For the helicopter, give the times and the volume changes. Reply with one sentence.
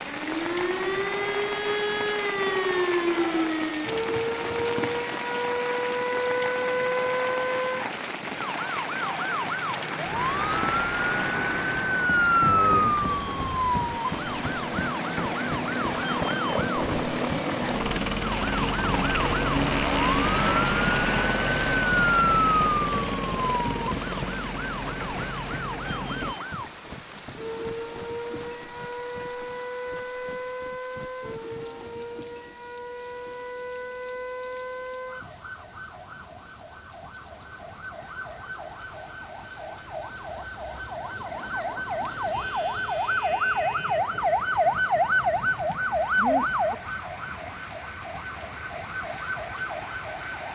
The helicopter can be heard from 10.1 to 26.4 s, getting louder then quieter.